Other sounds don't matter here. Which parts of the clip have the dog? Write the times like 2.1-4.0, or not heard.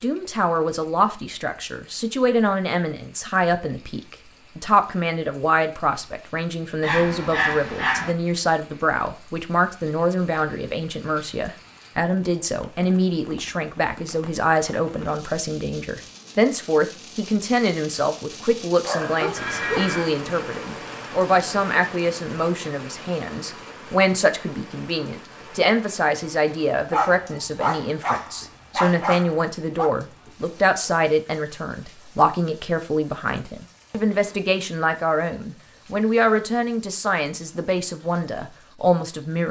6.8-8.2, 18.8-19.9, 26.9-29.9.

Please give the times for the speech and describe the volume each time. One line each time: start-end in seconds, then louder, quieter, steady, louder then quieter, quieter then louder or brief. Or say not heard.
0.0-39.4 steady.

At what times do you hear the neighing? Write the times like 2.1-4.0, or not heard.
19.4-20.1.